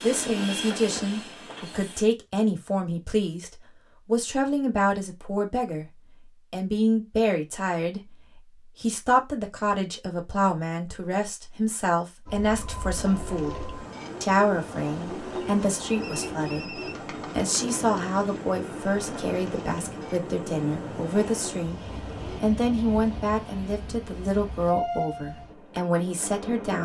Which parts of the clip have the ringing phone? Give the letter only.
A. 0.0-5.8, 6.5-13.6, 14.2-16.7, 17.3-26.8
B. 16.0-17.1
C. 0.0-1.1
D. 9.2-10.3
B.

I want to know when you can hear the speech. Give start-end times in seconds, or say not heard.
0.0-5.8, 6.5-13.6, 14.2-16.7, 17.3-26.8.